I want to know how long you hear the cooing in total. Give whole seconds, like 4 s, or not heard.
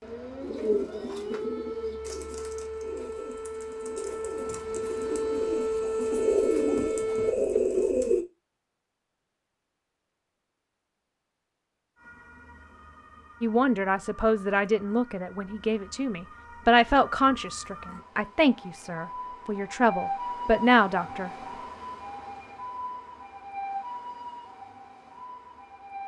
8 s.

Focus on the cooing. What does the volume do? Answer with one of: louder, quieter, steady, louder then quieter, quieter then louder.
quieter then louder.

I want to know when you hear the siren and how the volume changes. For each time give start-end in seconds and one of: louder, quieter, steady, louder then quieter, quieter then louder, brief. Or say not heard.
0.0-7.3 louder
11.9-26.0 louder.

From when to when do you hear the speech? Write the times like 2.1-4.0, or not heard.
13.4-21.3.